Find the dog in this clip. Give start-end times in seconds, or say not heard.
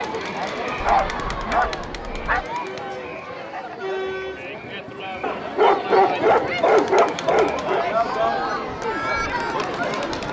0.8-2.5, 5.2-7.8.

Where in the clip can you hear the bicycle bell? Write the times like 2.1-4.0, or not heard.
not heard.